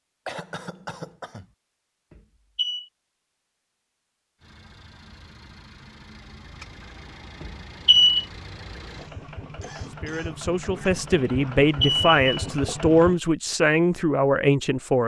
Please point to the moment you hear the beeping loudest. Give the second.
8 s.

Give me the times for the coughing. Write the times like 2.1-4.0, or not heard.
0.2-1.5, 9.1-10.9.